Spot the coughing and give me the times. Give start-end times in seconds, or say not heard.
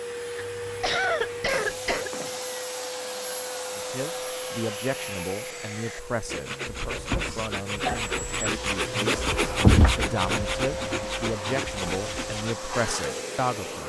0.3-2.1, 7.2-8.1.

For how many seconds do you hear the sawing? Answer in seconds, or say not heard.
10 s.